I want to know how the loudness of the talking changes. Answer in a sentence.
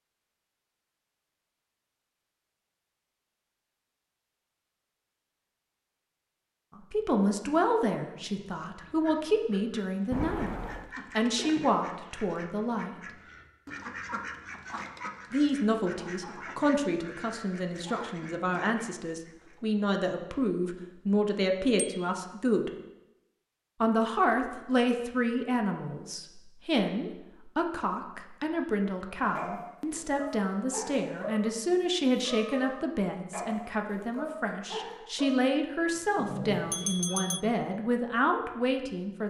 The loudness of the talking stays about the same.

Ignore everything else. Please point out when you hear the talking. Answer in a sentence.
The talking can be heard from 6.8 to 12.9 s, from 15.3 to 22.7 s and from 23.8 to 39.2 s.